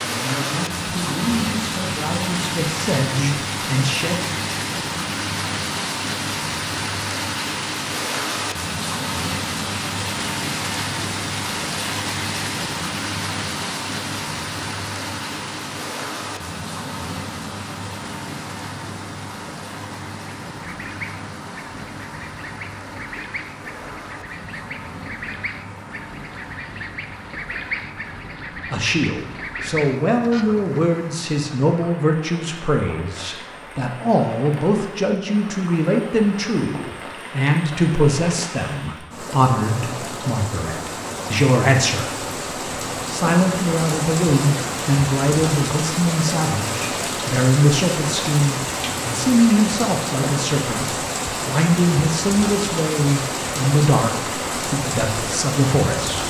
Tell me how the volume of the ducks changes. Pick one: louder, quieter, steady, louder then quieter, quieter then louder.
louder.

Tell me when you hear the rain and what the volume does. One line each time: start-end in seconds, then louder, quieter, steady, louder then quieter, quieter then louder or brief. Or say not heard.
0.0-56.2 quieter then louder.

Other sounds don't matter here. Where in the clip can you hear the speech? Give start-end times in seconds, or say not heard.
0.0-4.3, 28.7-42.2, 43.0-56.2.